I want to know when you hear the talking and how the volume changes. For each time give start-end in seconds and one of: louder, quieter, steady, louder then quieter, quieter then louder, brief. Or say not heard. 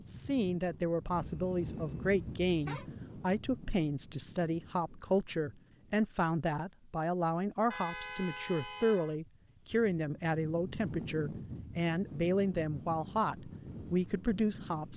0.0-14.9 steady.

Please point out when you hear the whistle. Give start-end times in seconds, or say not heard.
not heard.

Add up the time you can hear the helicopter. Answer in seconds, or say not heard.
not heard.